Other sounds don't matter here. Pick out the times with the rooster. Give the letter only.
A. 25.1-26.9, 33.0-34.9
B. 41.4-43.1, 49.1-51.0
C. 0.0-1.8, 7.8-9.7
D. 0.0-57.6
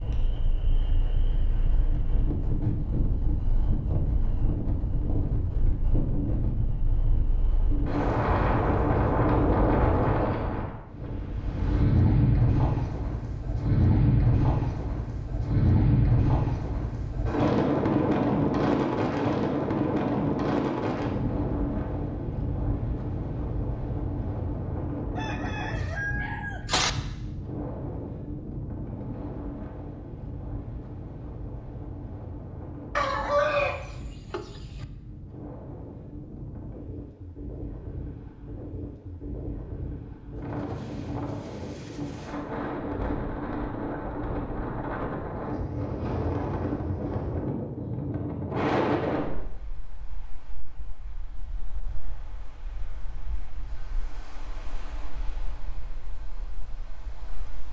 A.